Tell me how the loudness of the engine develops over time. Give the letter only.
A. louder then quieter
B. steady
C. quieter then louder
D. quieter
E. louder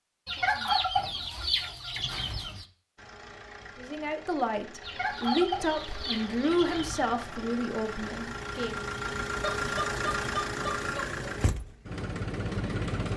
E.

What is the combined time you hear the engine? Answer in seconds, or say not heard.
10 s.